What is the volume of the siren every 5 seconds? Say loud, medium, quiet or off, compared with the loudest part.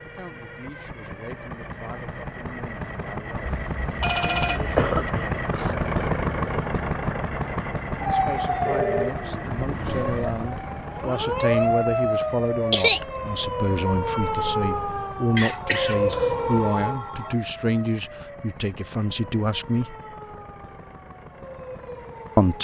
off, loud, loud, loud, quiet.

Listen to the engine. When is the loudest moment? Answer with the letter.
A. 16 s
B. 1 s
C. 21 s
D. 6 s
D.